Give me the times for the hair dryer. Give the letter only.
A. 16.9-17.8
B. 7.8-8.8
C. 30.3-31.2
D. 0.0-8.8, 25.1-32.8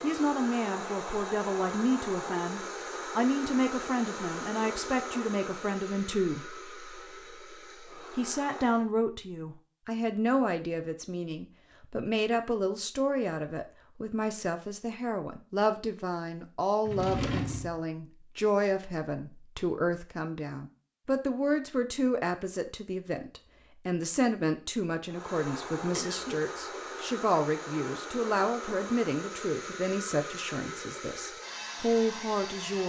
D.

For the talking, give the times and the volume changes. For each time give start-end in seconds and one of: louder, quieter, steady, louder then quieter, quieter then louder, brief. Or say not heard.
0.0-32.8 steady.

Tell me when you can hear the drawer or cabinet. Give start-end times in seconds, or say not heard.
16.9-17.8.